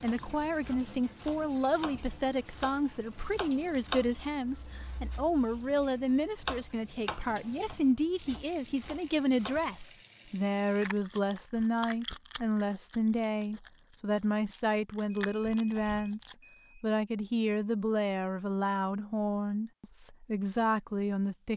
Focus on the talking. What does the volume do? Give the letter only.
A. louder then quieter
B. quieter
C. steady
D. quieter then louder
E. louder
C.